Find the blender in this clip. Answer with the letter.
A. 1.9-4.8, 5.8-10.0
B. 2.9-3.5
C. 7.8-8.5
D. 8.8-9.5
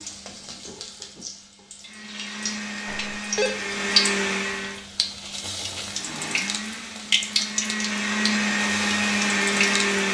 A.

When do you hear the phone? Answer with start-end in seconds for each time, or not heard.
2.9-3.5.